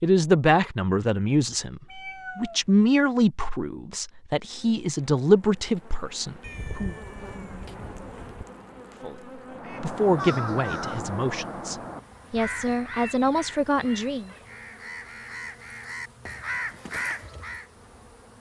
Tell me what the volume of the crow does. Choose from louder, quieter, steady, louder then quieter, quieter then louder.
quieter then louder.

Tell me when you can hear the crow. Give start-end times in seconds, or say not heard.
9.4-17.6.